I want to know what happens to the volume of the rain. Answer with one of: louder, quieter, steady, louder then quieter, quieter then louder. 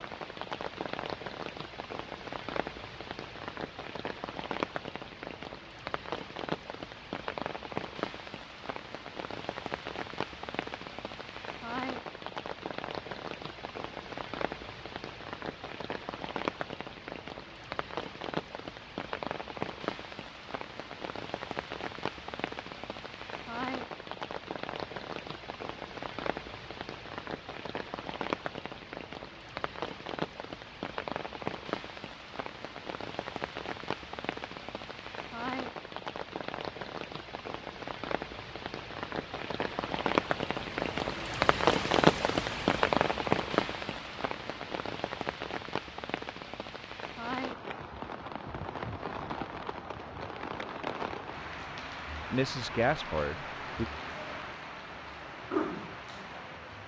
louder then quieter.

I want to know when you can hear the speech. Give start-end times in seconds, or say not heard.
52.3-53.9.